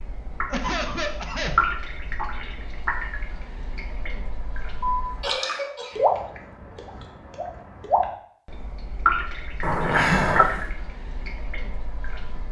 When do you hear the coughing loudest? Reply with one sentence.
The volume of the coughing peaks at 10 seconds.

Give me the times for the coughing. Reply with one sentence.
The coughing can be heard from 0.5 to 1.6 s, from 4.8 to 6.2 s and from 9.6 to 10.6 s.